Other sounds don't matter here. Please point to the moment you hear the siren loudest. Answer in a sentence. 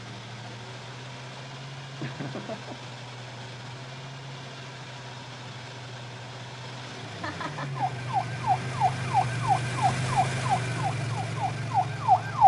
The volume of the siren peaks at 12 seconds.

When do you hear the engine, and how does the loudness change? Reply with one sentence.
The engine can be heard from 0.0 to 12.4 s, getting louder.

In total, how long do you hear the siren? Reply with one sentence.
You can hear the siren for 5 seconds altogether.